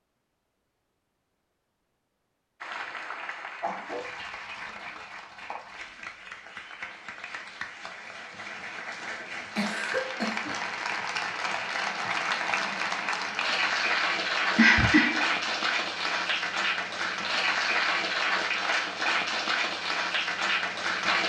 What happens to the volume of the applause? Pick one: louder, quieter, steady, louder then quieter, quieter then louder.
louder.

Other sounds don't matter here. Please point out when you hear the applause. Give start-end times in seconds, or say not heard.
2.6-21.2.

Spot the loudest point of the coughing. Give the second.
15 s.